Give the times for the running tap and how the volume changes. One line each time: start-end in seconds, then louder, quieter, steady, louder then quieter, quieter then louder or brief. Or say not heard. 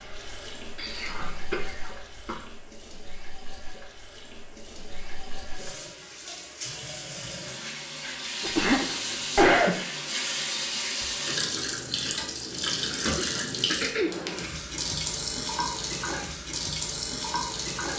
0.0-17.9 louder.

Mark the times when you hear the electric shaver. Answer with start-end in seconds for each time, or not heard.
not heard.